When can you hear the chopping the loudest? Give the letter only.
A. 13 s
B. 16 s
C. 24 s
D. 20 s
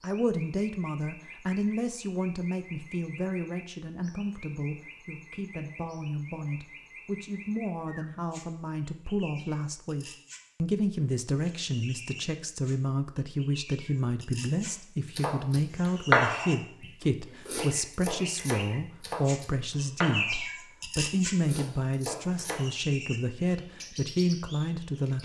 B.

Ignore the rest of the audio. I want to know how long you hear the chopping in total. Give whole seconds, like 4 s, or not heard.
7 s.